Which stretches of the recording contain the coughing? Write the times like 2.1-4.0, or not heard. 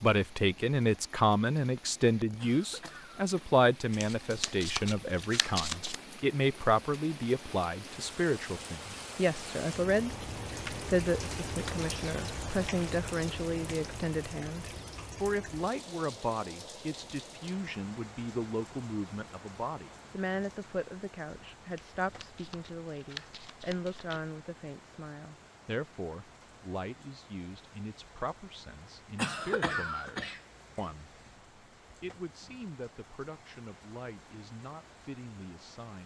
2.4-3.3, 29.1-30.9.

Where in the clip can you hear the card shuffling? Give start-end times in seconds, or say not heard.
3.9-6.0, 21.7-24.2.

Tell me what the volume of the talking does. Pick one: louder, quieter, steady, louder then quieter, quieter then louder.
quieter.